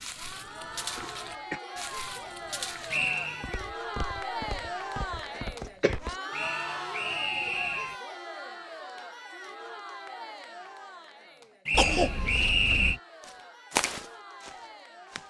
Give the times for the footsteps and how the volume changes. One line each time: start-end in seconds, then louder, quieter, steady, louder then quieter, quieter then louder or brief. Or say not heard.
0.0-6.2 steady
13.2-15.2 brief.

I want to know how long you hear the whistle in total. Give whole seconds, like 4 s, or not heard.
4 s.